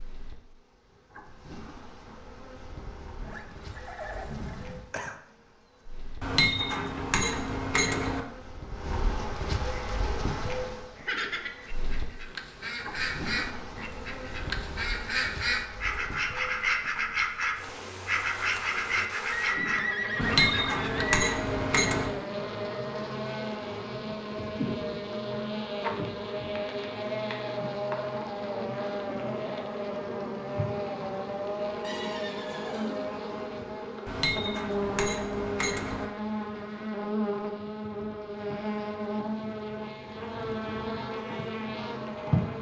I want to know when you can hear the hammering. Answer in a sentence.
The hammering can be heard from 6.2 to 8.2 s, from 20.2 to 22.1 s and from 34.0 to 36.0 s.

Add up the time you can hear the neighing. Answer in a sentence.
The neighing can be heard for 5 seconds in total.